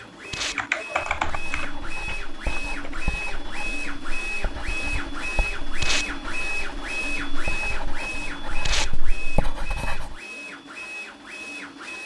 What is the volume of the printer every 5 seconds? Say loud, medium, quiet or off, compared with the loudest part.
loud, loud, medium.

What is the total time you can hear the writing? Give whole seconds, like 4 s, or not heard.
9 s.